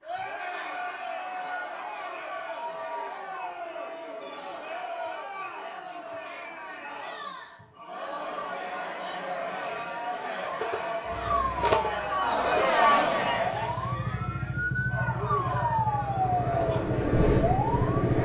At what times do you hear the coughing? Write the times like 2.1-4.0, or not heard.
not heard.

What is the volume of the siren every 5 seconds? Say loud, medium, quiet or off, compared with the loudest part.
off, off, loud, loud.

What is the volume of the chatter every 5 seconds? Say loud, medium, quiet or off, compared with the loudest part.
medium, medium, loud, medium.